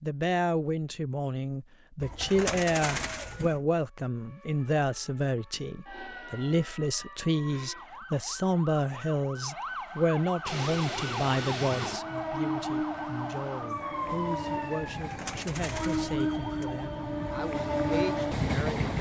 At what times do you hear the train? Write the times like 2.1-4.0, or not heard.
10.4-18.9.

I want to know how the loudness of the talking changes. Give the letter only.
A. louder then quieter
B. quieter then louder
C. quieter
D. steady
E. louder
C.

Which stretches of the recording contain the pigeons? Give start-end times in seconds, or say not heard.
2.0-3.6, 14.9-16.6.